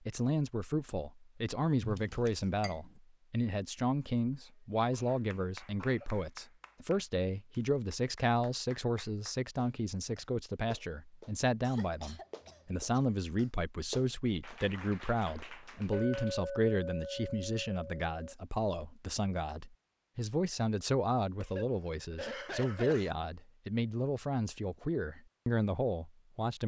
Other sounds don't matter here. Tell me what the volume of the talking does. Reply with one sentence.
The loudness of the talking stays about the same.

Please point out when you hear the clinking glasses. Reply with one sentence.
You can hear the clinking glasses from 1.8 to 2.8 s and from 15.9 to 18.4 s.